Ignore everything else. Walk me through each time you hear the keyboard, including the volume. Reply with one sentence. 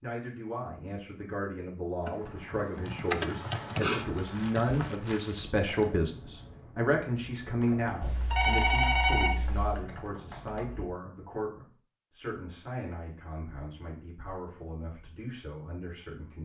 The keyboard can be heard from 2.0 to 10.8 s, getting quieter.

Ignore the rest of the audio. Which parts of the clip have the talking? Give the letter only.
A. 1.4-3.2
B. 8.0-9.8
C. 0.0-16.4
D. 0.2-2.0
C.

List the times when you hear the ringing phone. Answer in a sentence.
You can hear the ringing phone from 8.0 to 9.8 s.